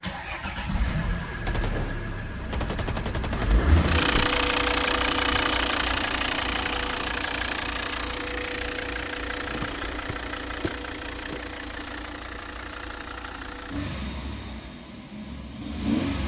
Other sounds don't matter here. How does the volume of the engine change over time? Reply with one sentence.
The loudness of the engine goes up, then down.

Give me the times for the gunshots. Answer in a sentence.
You can hear the gunshots from 1.4 to 4.2 s.